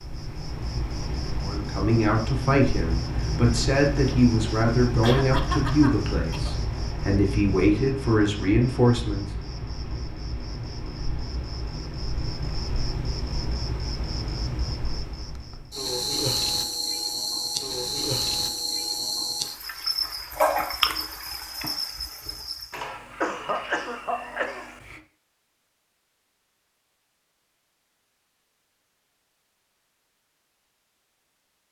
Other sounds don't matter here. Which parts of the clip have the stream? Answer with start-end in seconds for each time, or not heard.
not heard.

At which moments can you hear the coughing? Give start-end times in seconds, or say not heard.
5.0-6.5, 22.7-25.0.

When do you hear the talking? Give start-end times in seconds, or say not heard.
1.4-9.2.